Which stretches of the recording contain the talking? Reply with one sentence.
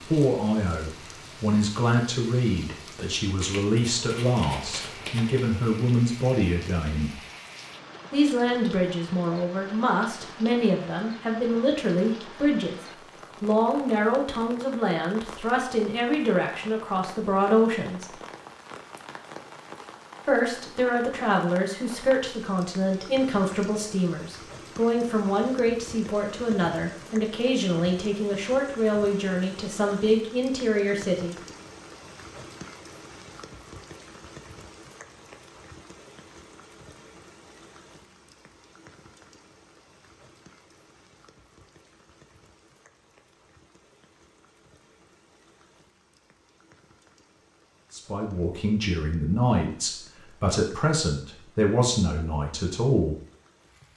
You can hear the talking from 0.0 to 7.2 s, from 8.1 to 12.8 s, from 13.4 to 18.1 s, from 20.2 to 31.4 s and from 47.9 to 53.1 s.